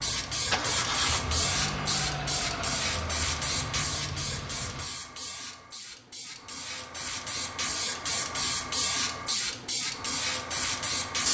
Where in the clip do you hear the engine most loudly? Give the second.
1 s.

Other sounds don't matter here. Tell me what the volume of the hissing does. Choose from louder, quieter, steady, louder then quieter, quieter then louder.
quieter then louder.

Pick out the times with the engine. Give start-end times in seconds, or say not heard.
0.0-4.9.